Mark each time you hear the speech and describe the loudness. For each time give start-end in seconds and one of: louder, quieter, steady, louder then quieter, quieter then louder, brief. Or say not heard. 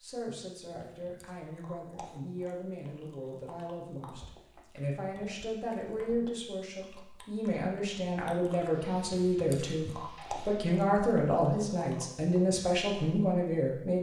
0.0-13.9 louder.